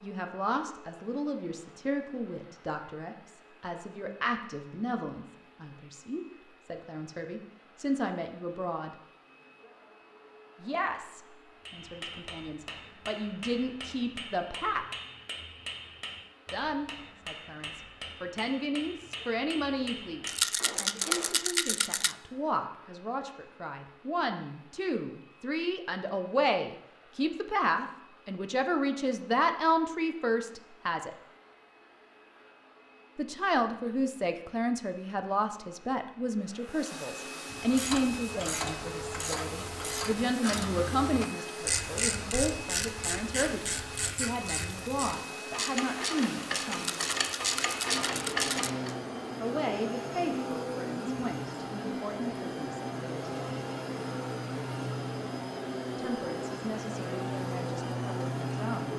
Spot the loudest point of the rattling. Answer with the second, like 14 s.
21 s.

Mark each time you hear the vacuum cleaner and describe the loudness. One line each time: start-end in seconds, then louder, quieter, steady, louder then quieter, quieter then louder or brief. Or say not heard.
0.0-58.9 louder.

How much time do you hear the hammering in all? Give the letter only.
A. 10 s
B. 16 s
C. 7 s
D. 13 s
A.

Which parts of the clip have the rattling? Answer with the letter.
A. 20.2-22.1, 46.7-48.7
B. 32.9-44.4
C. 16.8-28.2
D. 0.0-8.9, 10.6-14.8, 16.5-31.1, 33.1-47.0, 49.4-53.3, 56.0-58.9
A.